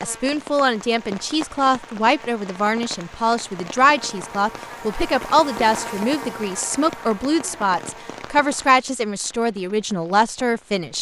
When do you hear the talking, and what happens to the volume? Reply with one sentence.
You can hear the talking from 0.0 to 10.9 s, at a steady volume.